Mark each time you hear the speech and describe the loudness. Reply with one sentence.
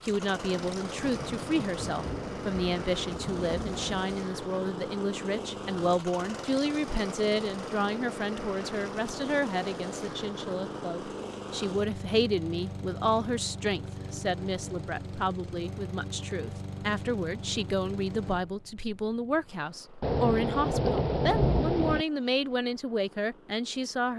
The speech can be heard from 0.0 to 24.1 s, at a steady volume.